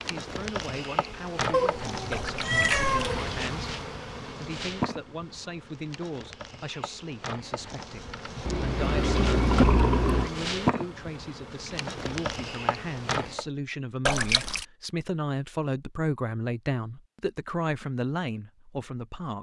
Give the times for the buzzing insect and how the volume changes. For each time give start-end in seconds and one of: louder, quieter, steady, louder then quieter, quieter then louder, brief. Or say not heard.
0.0-13.4 quieter then louder.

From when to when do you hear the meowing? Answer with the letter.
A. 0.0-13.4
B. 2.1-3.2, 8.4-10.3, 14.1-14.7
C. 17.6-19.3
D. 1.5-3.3
D.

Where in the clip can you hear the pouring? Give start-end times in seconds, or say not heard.
2.1-3.2, 8.4-10.3, 14.1-14.7.